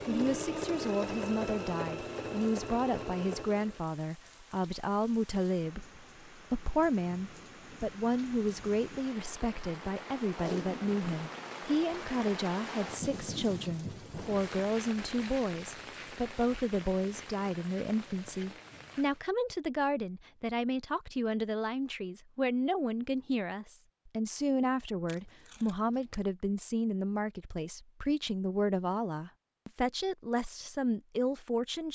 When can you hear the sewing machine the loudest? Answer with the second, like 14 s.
1 s.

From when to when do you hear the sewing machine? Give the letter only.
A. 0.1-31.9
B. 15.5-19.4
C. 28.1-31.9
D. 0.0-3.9
D.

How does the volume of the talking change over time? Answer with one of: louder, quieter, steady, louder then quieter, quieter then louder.
steady.